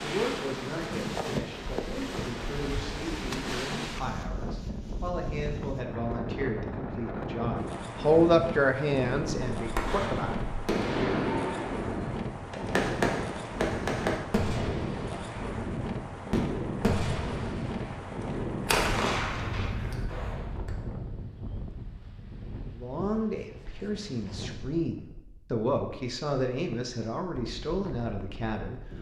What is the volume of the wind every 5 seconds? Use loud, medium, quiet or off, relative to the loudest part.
loud, loud, loud, loud, medium, quiet.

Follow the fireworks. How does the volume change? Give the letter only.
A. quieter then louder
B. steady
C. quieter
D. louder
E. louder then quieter
B.